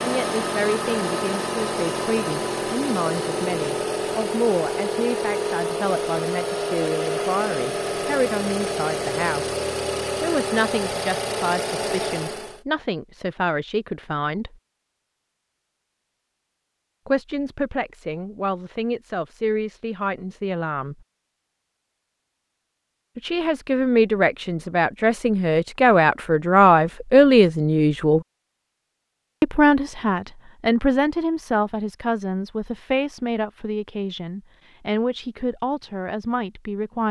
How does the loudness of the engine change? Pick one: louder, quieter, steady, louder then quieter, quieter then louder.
steady.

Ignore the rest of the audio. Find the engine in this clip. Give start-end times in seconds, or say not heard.
0.0-12.6.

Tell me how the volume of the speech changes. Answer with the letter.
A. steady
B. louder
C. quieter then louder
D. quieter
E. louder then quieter
E.